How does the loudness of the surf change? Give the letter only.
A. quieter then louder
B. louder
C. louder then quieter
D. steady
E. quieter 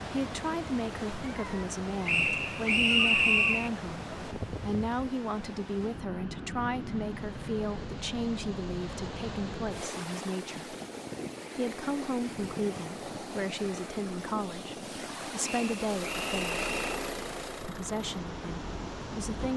D.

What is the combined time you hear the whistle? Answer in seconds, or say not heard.
3 s.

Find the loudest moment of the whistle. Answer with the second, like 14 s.
3 s.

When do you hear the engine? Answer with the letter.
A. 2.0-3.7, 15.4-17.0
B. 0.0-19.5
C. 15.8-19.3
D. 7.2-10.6
C.